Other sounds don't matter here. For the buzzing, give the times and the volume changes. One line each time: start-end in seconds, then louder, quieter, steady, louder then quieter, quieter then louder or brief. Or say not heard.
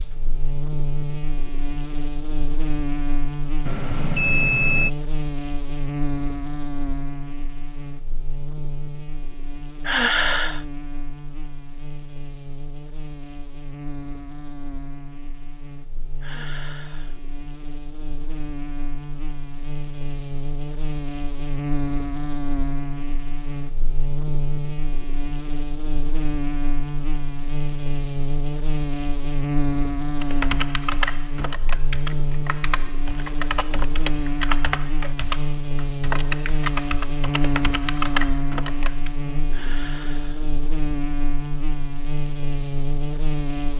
0.0-43.7 quieter then louder.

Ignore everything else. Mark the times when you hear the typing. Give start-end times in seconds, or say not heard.
30.2-39.1.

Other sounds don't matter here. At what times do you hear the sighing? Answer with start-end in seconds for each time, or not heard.
9.8-10.7, 16.2-17.2, 39.5-40.5.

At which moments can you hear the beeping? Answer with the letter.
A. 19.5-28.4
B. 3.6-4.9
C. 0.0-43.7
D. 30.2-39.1
B.